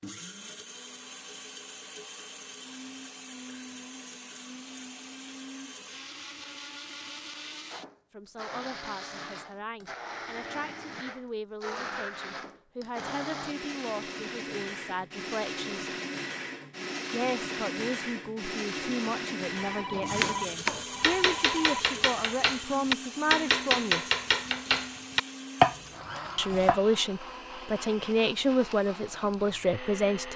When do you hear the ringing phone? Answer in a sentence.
You can hear the ringing phone from 19.5 to 22.0 s.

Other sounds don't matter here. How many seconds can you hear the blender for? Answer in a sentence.
You can hear the blender for 30 seconds altogether.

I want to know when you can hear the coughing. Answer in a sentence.
The coughing can't be heard in this clip.